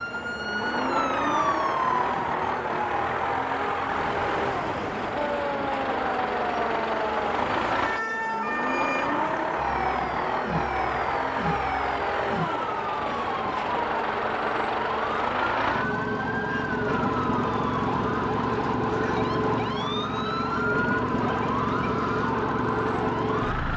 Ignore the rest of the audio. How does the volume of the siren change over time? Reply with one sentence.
The volume of the siren stays about the same.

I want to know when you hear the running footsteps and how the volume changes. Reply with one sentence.
You can't hear the running footsteps here.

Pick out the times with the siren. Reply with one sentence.
You can hear the siren from 0.0 to 23.7 s.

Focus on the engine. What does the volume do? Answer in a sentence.
The loudness of the engine stays about the same.